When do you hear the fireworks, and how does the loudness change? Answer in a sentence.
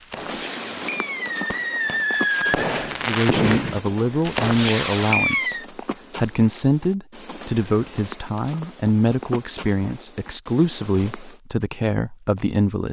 You can hear the fireworks from 0.0 to 5.7 s, getting louder.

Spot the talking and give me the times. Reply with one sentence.
You can hear the talking from 3.0 to 12.8 s.